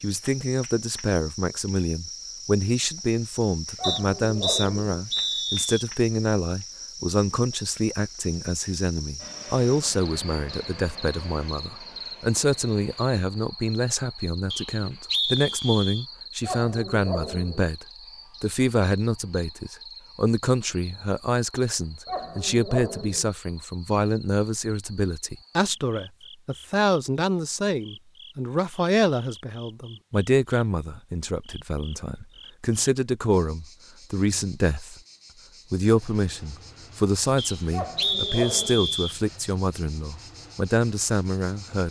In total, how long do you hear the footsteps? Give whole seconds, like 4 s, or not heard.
not heard.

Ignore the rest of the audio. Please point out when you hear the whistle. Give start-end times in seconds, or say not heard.
3.8-5.8, 14.5-16.1, 37.4-39.2.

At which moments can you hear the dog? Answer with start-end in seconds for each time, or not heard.
3.8-4.8, 16.4-17.7, 22.1-23.3, 37.7-39.0.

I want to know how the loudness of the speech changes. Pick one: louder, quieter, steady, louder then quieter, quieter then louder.
steady.